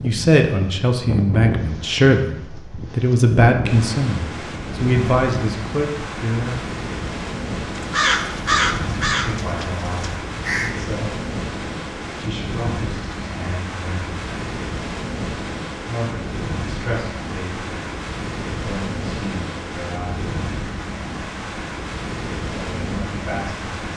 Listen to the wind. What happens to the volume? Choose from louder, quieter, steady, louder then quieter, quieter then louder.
steady.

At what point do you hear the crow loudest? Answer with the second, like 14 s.
9 s.